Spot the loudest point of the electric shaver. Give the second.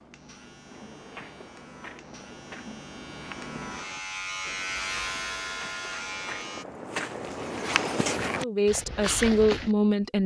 5 s.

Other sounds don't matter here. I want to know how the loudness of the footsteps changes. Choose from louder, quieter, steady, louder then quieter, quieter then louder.
louder.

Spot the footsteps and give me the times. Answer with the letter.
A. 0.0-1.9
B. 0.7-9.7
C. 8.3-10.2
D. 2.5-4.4
B.